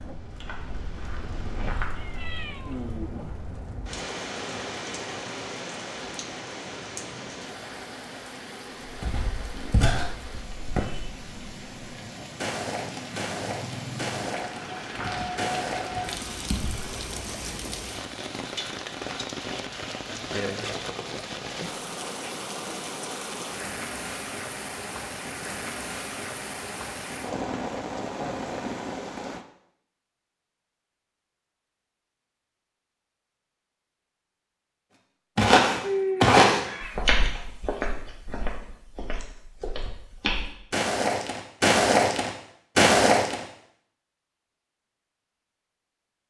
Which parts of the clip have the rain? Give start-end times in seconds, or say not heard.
0.0-29.4.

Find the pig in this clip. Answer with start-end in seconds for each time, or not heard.
not heard.